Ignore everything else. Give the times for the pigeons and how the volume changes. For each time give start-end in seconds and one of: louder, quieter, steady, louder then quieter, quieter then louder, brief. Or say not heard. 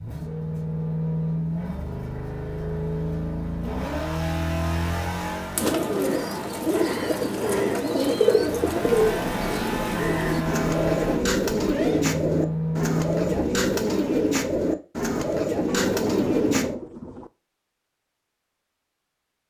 5.5-16.8 steady.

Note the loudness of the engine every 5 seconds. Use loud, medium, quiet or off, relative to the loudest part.
loud, loud, loud, off.